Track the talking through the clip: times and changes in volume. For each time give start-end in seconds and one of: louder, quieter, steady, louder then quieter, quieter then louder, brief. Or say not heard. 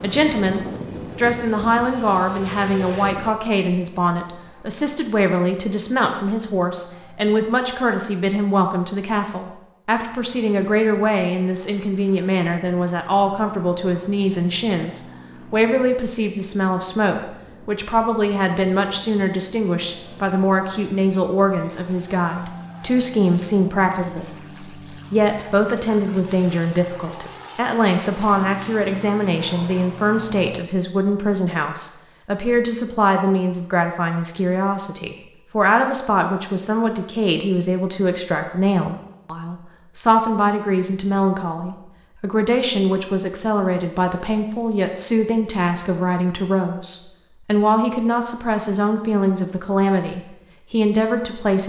0.0-51.6 steady.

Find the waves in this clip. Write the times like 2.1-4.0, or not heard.
not heard.